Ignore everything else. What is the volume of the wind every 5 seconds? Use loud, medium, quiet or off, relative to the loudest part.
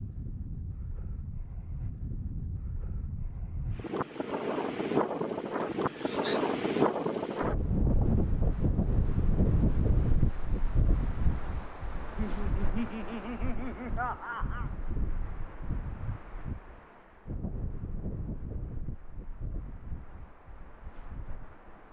medium, loud, medium, quiet, quiet.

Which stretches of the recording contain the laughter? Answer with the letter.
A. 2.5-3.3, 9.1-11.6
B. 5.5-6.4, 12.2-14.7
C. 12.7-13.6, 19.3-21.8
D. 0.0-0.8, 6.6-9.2
B.